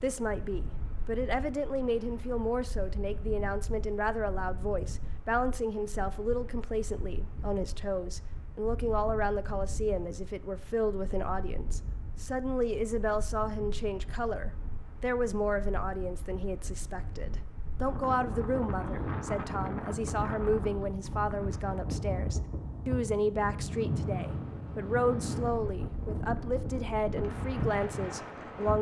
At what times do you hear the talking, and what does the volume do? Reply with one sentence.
The talking can be heard from 0.0 to 28.7 s, at a steady volume.